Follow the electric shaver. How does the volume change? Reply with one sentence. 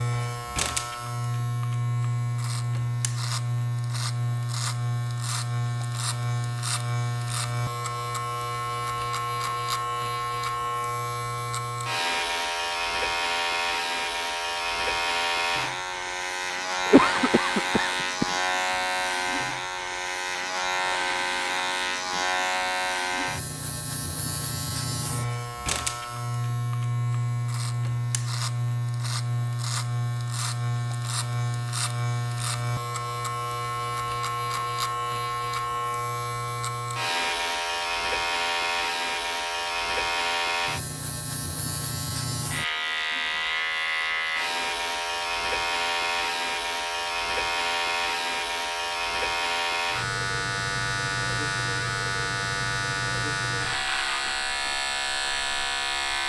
The volume of the electric shaver stays about the same.